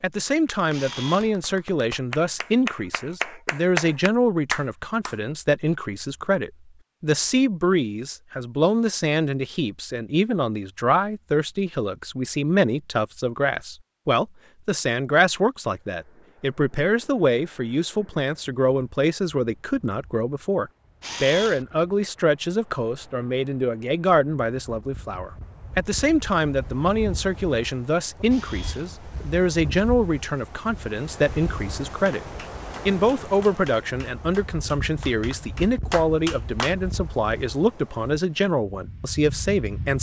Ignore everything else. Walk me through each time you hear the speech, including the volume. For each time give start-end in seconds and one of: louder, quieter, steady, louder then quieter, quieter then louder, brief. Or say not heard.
0.0-32.2 steady
32.9-39.9 steady.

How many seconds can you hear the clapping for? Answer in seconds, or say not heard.
10 s.